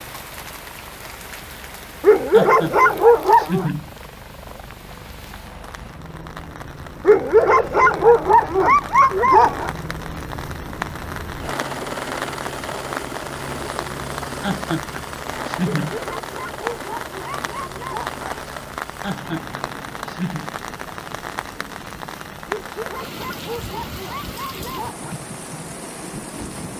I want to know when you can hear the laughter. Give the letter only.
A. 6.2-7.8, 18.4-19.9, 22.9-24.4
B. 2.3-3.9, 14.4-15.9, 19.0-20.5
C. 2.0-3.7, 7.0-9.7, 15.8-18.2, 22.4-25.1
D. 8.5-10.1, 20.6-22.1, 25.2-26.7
B.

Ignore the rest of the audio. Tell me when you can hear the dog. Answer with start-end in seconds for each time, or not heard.
2.0-3.7, 7.0-9.7, 15.8-18.2, 22.4-25.1.